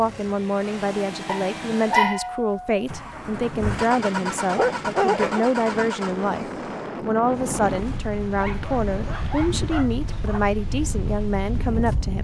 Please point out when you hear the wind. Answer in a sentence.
You can hear the wind from 3.1 to 12.2 s.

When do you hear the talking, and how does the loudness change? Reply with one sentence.
The talking can be heard from 0.0 to 12.2 s, at a steady volume.